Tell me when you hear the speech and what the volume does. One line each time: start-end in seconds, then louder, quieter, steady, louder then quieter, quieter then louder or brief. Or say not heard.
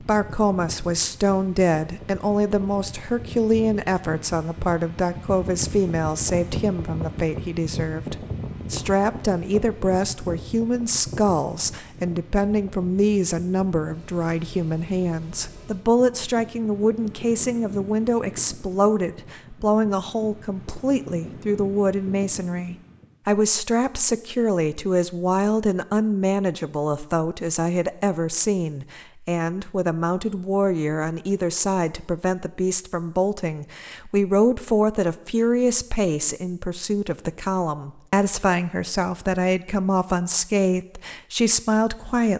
0.0-42.3 steady.